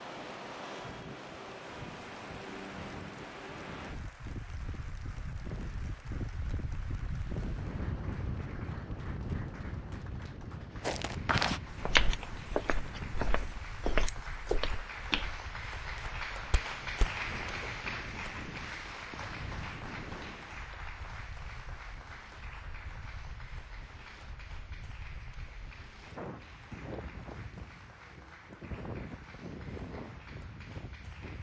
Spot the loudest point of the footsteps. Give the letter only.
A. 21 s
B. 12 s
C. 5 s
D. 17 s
B.